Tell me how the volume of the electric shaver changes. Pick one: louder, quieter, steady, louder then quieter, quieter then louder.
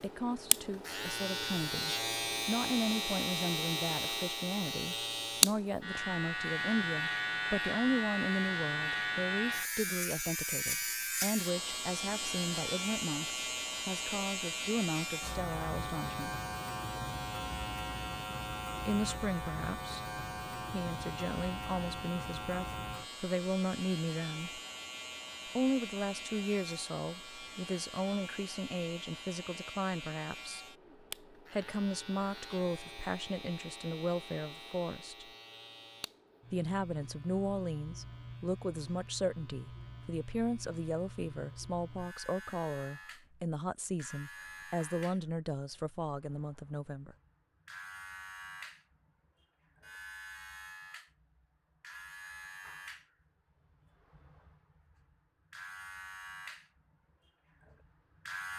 quieter.